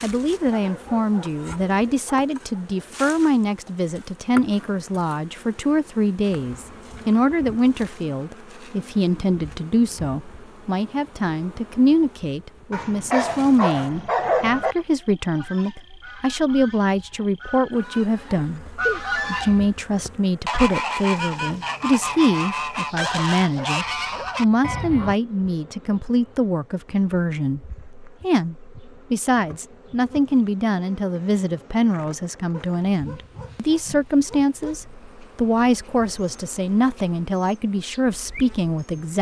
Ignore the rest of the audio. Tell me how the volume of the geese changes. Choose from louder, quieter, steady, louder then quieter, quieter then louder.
louder.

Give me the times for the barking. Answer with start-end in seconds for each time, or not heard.
0.4-2.9, 12.7-14.8, 22.9-24.5, 32.5-34.9.